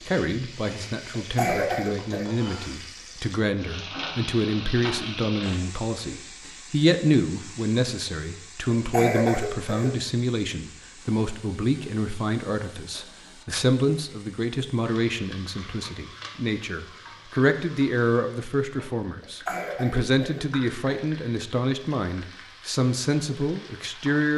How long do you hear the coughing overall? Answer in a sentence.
You can hear the coughing for 4 seconds altogether.